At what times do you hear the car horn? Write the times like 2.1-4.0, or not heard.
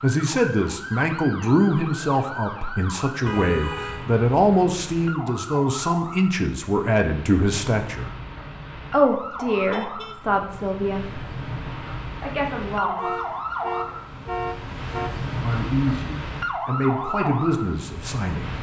3.2-4.1, 9.1-10.2, 12.9-15.3.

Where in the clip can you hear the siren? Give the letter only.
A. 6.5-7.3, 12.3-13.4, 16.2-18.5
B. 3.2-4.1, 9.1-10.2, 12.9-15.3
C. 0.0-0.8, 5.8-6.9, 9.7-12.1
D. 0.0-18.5
D.